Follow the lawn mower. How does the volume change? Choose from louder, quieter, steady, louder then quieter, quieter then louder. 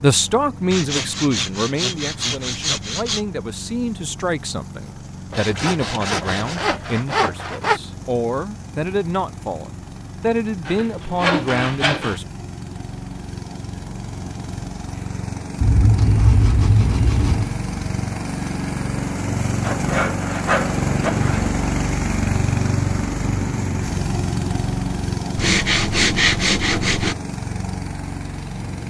louder.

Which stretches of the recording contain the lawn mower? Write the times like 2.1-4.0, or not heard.
0.0-28.8.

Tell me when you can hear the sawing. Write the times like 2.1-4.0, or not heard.
0.7-3.2, 5.3-7.8, 10.7-12.2, 15.6-17.5, 19.6-21.5, 25.4-27.1.